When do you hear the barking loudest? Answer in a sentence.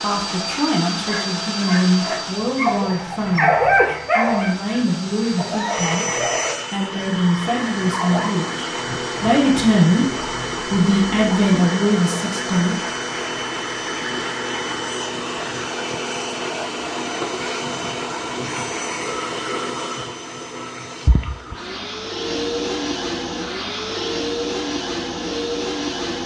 The volume of the barking peaks at 4 seconds.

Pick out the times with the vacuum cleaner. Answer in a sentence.
You can hear the vacuum cleaner from 0.0 to 26.2 s.